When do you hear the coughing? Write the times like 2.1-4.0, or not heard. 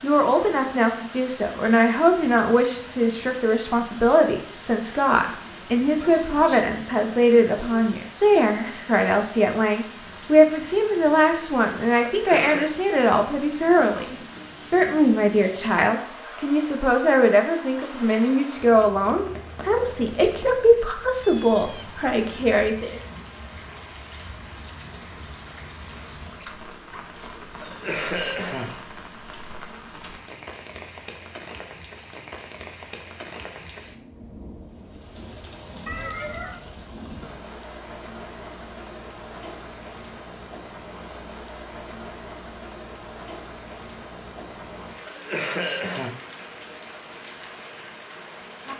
12.1-12.7, 27.6-28.8, 45.0-46.1.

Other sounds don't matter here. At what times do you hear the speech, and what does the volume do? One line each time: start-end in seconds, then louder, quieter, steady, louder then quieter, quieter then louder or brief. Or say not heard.
0.0-23.0 steady.